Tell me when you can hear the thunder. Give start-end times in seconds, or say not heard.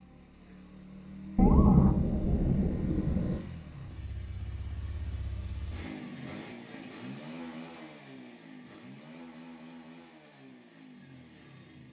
1.4-3.4.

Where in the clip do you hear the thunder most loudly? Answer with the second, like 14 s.
2 s.